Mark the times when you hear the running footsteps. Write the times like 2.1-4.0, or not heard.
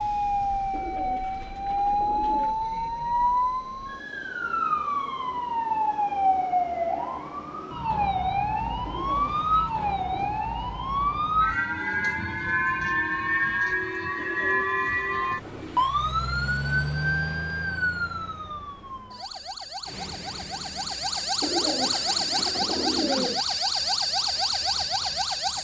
not heard.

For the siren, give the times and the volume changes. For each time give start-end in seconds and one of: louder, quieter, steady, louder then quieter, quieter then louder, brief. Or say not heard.
0.0-25.5 steady.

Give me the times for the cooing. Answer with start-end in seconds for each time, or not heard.
0.7-2.6, 8.8-10.4, 14.2-15.9, 21.4-23.4.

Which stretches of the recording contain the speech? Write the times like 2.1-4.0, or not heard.
not heard.